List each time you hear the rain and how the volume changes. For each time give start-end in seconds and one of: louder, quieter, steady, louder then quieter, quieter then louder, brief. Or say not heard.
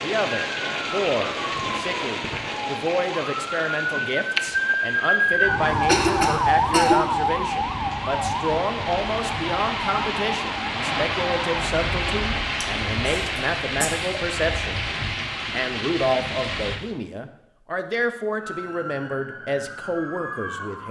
0.0-16.8 quieter then louder.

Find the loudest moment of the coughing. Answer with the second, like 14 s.
6 s.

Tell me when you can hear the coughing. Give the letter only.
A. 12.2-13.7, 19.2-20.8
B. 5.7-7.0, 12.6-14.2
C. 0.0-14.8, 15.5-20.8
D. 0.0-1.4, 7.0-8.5
B.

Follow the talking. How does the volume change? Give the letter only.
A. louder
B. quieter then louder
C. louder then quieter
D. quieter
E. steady
E.